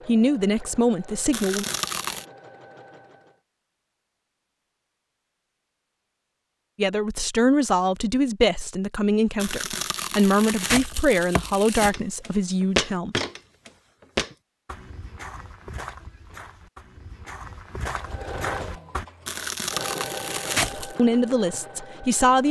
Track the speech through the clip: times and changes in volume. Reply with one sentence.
You can hear the speech briefly from 0.1 to 1.6 s; from 6.8 to 13.2 s, at a steady volume; and briefly from 20.8 to 22.4 s.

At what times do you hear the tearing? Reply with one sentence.
You can hear the tearing from 1.3 to 2.2 s, from 9.3 to 11.9 s and from 19.2 to 20.9 s.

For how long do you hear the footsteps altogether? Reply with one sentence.
The footsteps can be heard for 7 seconds in total.